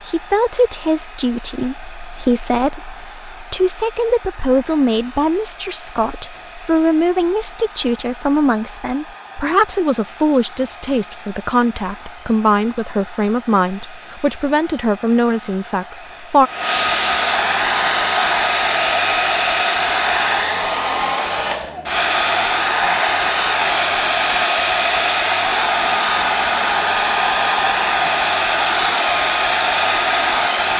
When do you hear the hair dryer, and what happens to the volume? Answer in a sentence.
You can hear the hair dryer from 0.0 to 30.7 s, getting louder.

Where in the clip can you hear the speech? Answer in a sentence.
You can hear the speech from 0.0 to 16.5 s.